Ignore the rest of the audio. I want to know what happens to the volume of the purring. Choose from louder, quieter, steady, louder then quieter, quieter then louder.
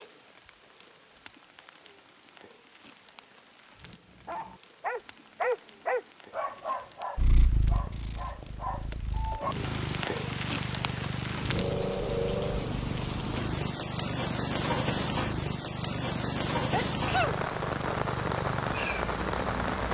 steady.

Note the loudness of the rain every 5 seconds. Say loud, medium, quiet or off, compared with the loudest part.
quiet, quiet, loud, loud.